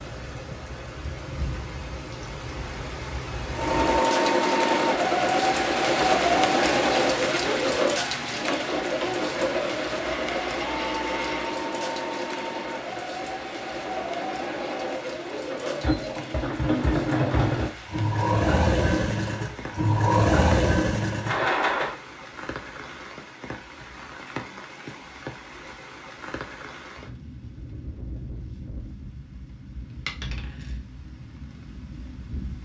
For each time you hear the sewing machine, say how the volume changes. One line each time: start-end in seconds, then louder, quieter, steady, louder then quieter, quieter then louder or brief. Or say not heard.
3.5-21.9 quieter then louder.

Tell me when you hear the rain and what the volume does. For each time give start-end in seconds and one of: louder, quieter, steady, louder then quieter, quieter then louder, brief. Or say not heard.
0.0-32.5 quieter.